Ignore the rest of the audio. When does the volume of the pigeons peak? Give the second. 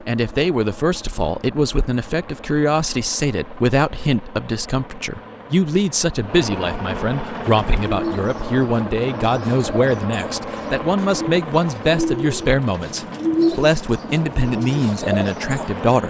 13 s.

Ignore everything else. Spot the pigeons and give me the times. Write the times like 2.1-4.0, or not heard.
7.3-15.9.